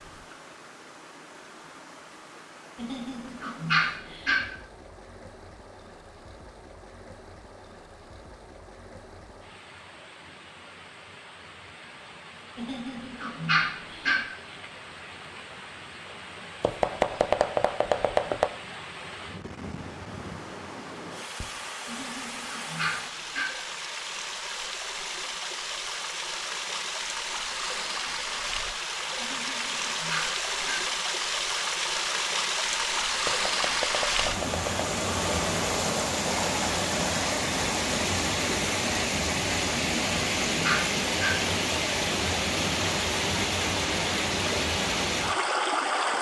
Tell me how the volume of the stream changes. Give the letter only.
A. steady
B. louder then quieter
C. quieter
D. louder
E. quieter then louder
D.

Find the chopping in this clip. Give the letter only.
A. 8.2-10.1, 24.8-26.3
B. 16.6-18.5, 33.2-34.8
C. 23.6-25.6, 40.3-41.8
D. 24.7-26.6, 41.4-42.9
B.